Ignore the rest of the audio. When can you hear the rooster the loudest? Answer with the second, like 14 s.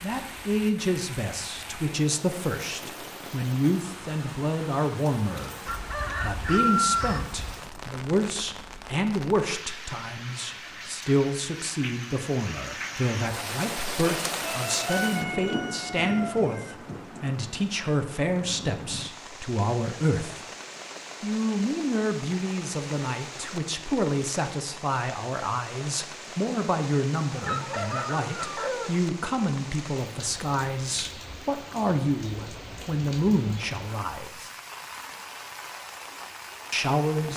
7 s.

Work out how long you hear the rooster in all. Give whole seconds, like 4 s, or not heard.
6 s.